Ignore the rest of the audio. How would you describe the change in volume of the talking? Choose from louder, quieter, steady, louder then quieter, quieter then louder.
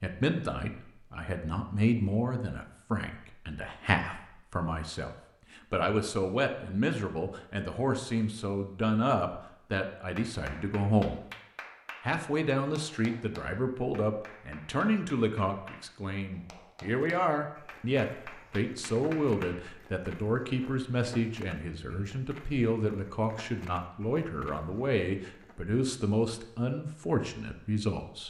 steady.